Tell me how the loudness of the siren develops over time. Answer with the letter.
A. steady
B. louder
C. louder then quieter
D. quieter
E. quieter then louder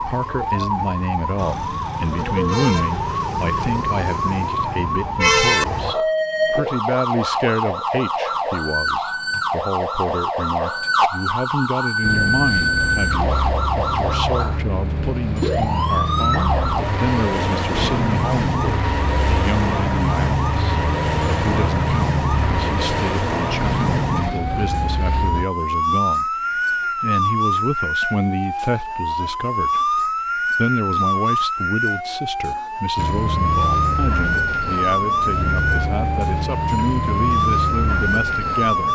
A.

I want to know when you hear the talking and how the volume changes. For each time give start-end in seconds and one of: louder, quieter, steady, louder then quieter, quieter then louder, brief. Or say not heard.
0.0-38.8 steady.